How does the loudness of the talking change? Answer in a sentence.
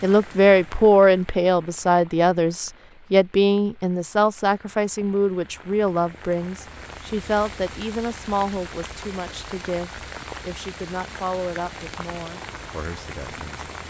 The volume of the talking goes down.